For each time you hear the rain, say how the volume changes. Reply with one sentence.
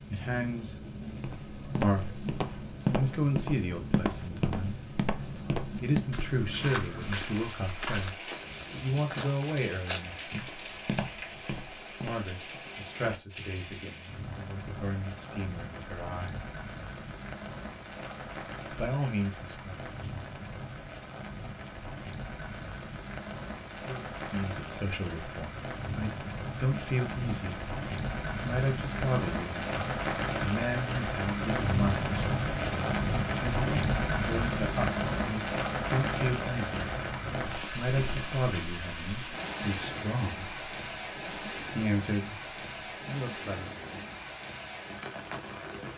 The rain can be heard from 0.0 to 45.9 s, getting louder then quieter.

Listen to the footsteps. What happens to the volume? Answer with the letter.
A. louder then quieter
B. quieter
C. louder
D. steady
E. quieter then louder
B.